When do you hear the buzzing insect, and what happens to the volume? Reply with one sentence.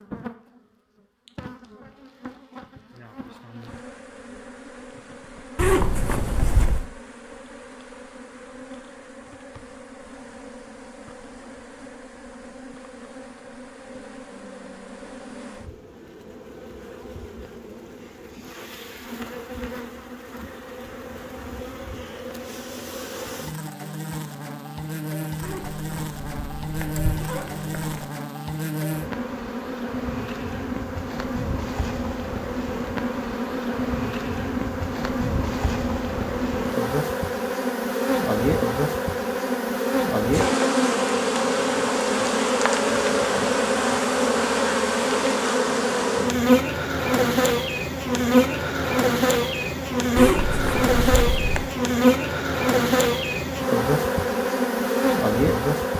You can hear the buzzing insect from 0.0 to 55.9 s, getting louder.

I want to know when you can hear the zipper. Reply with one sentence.
You can hear the zipper from 5.5 to 6.9 s, from 25.4 to 28.1 s and from 50.1 to 51.7 s.